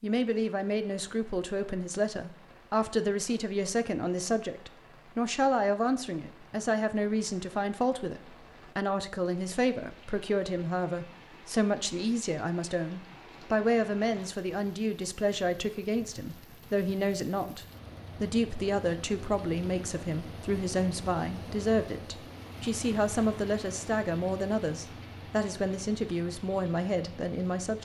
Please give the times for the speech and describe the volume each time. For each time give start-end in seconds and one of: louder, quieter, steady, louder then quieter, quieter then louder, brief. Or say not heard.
0.0-27.7 steady.